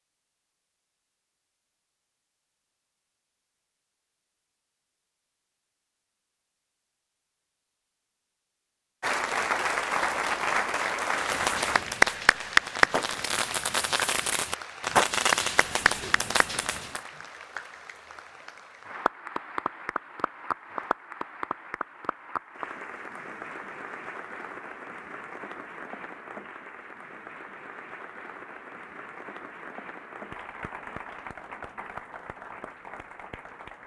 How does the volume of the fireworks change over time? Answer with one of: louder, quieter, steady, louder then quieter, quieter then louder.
louder then quieter.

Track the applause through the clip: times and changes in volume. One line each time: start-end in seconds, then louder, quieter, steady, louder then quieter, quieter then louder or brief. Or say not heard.
9.0-33.8 quieter.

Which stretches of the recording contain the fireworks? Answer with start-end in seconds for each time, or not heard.
11.2-17.1.